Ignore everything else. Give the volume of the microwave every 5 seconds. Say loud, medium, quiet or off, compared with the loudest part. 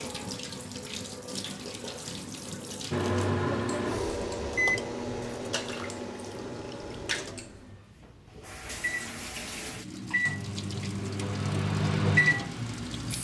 loud, medium, loud.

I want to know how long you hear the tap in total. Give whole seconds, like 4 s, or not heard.
13 s.